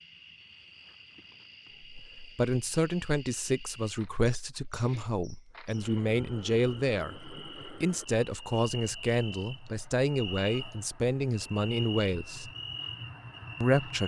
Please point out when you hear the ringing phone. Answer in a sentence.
The ringing phone can't be heard in this clip.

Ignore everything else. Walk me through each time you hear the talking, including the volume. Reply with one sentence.
The talking can be heard from 1.9 to 12.5 s, at a steady volume; and briefly from 13.6 to 14.0 s.